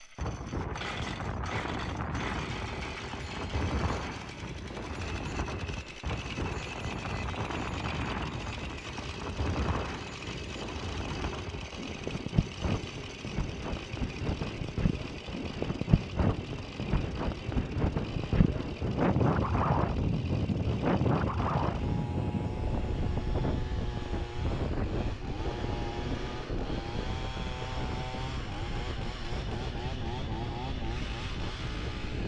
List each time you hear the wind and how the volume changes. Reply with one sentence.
You can hear the wind from 0.0 to 32.2 s, getting louder then quieter.